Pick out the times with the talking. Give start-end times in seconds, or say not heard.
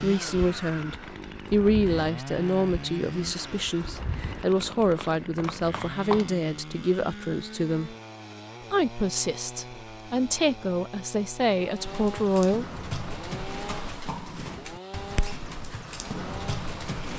0.0-8.0, 8.7-12.7.